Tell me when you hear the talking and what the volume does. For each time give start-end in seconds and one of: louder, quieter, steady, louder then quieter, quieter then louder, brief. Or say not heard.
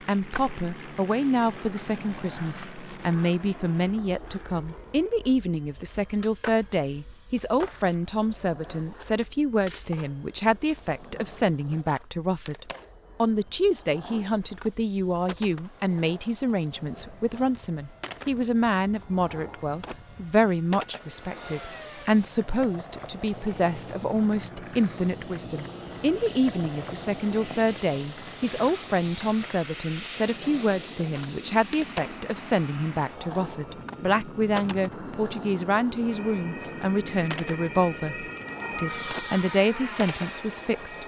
0.1-41.0 steady.